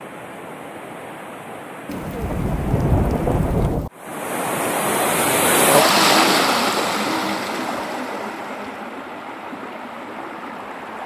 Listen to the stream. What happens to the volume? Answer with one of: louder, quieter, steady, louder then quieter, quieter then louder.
louder then quieter.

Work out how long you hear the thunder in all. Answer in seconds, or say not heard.
2 s.